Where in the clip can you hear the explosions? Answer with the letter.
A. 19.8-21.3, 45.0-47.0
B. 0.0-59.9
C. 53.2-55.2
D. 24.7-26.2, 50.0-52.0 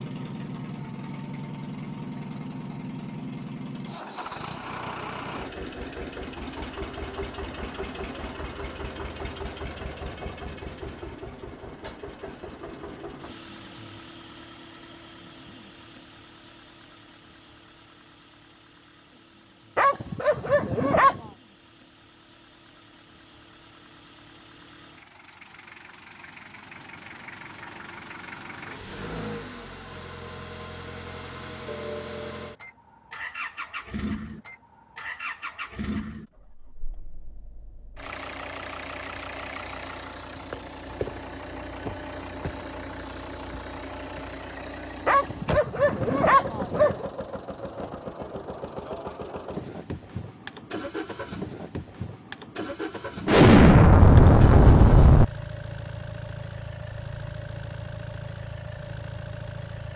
C.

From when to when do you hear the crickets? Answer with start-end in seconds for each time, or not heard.
not heard.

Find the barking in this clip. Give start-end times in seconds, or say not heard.
19.8-21.3, 45.0-47.0.